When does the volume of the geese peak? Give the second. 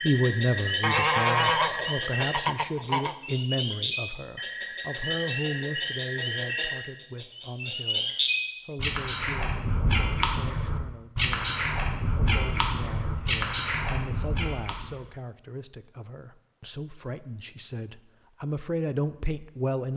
1 s.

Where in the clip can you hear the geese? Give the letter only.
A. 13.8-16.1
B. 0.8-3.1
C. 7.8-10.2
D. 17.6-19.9
B.